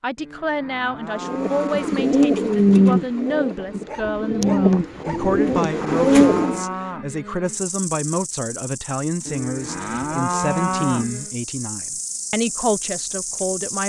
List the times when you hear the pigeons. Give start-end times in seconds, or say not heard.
1.2-6.7.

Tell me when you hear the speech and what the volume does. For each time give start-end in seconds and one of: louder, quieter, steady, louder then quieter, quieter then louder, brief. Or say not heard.
0.0-13.8 steady.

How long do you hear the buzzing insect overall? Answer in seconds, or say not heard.
6 s.